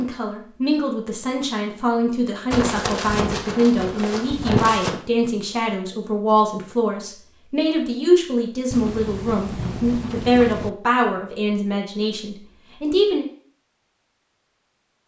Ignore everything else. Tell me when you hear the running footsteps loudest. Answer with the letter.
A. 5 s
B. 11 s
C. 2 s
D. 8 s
A.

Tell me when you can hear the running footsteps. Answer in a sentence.
The running footsteps can be heard from 2.5 to 5.0 s.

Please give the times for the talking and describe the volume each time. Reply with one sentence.
The talking can be heard from 0.0 to 13.2 s, at a steady volume.